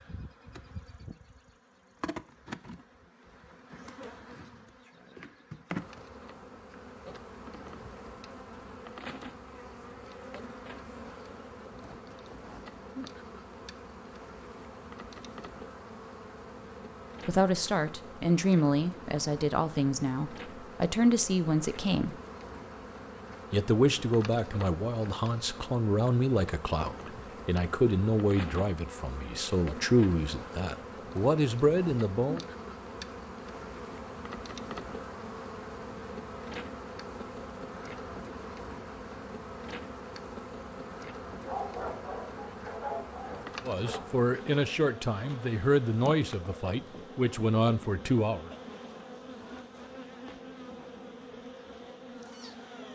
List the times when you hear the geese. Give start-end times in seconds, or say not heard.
not heard.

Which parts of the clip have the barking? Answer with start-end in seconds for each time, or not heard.
41.5-44.0.